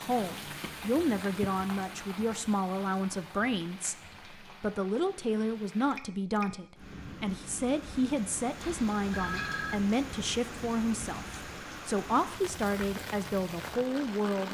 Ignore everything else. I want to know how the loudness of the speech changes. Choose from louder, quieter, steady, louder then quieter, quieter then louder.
steady.